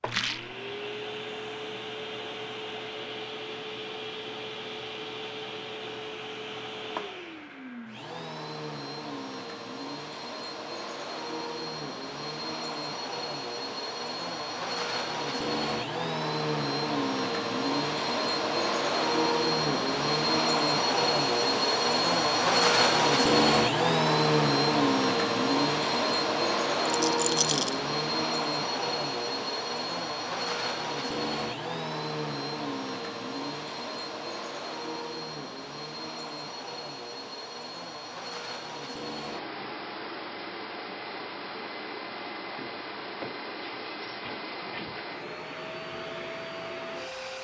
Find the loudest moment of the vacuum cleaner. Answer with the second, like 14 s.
23 s.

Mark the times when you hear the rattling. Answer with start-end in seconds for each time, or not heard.
0.1-0.6, 26.9-27.8.